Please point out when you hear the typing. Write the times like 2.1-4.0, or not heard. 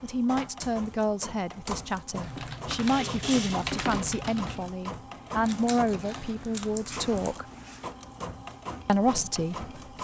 2.1-4.8.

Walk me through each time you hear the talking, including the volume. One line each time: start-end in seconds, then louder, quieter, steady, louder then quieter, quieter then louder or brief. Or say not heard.
0.0-7.5 steady
8.8-10.0 brief.